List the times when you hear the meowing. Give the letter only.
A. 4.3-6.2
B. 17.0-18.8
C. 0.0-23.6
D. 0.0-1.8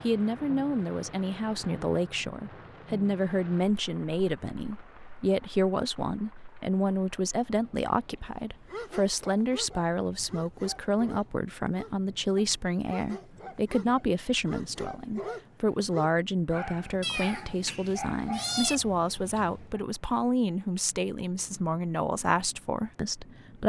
B.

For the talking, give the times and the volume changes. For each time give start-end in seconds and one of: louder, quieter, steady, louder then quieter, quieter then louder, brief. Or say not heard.
0.0-23.6 steady.